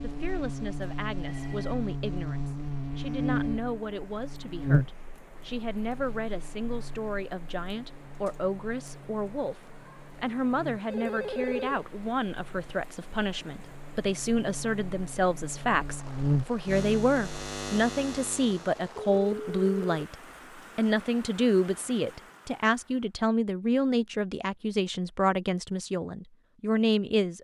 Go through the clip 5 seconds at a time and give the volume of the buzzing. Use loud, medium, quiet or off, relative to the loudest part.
loud, quiet, quiet, loud, off, off.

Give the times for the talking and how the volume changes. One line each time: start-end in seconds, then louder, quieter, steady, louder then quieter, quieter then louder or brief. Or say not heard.
0.0-27.3 louder.